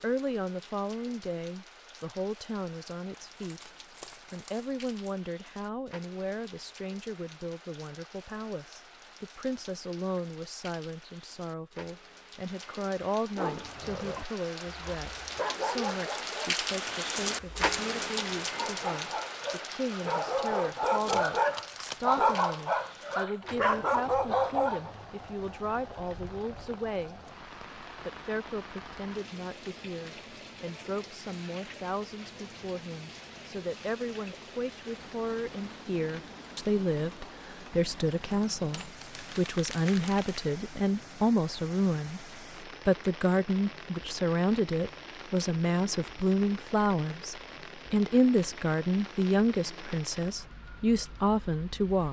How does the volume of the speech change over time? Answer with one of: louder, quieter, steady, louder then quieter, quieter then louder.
louder.